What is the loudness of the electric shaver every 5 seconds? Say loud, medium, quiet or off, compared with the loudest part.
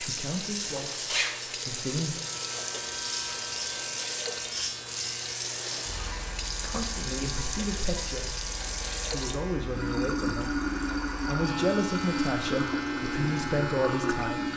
loud, medium, loud.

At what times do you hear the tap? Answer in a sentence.
The tap can be heard from 0.0 to 14.5 s.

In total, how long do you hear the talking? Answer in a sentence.
The talking can be heard for 10 seconds in total.